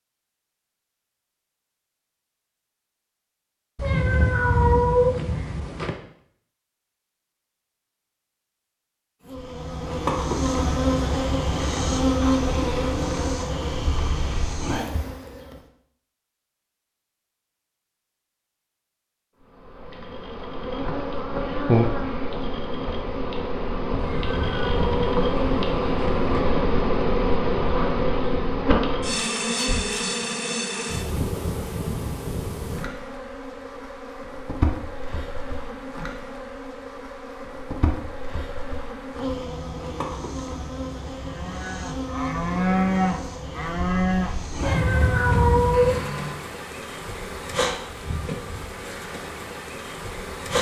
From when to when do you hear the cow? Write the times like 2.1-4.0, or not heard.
41.2-46.5.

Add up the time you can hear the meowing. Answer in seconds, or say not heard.
6 s.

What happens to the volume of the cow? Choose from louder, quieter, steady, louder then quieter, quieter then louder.
louder then quieter.